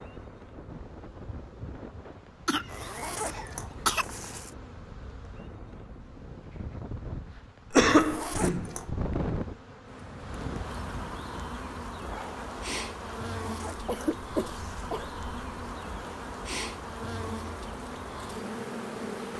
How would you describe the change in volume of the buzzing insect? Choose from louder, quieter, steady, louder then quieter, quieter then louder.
louder.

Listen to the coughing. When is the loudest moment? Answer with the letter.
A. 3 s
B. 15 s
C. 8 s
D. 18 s
C.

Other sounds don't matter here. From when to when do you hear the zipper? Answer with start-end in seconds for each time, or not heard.
2.6-4.5, 8.0-8.9, 13.3-14.9.